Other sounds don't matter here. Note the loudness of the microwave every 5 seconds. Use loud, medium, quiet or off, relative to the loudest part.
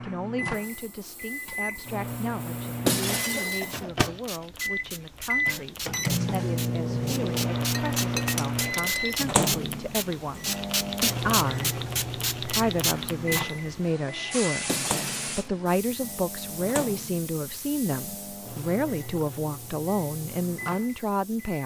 medium, loud, medium, quiet, quiet.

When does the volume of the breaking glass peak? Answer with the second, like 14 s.
3 s.